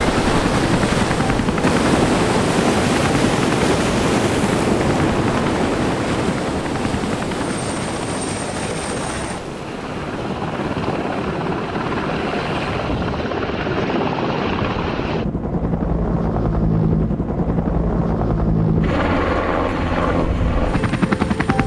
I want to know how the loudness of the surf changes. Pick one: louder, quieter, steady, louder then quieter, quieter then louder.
quieter.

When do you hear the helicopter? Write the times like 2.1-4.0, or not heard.
0.0-21.6.